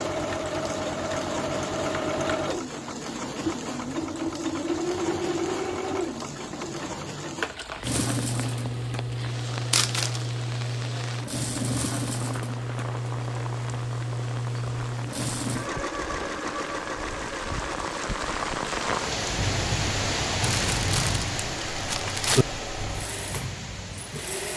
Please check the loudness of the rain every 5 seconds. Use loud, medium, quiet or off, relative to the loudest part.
medium, medium, medium, loud, loud.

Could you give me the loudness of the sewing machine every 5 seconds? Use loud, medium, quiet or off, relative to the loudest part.
loud, loud, loud, loud, medium.